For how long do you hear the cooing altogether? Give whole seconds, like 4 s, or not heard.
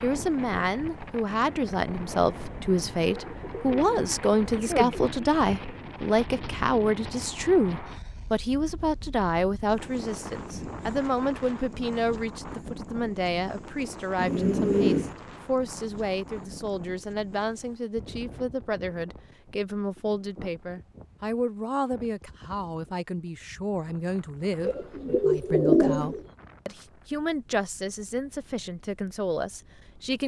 5 s.